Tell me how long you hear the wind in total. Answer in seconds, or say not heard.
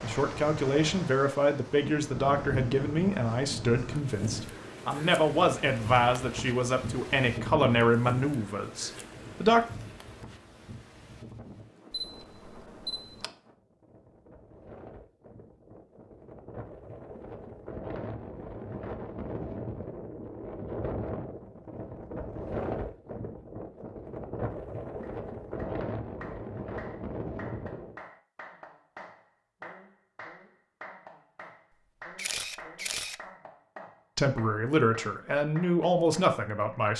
28 s.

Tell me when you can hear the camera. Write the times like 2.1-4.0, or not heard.
11.9-13.3, 32.1-33.2.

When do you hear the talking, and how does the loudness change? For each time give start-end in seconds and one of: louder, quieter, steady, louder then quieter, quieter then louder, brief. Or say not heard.
0.0-9.7 steady
34.1-36.9 brief.